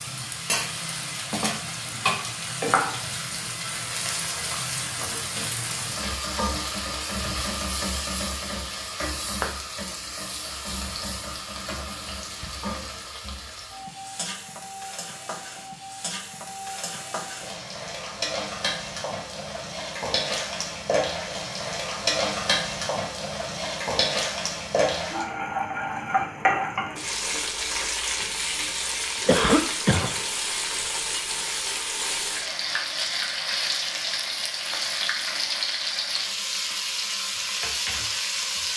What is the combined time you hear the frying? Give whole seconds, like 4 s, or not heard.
39 s.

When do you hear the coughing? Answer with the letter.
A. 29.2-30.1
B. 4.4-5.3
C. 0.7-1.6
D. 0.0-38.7
A.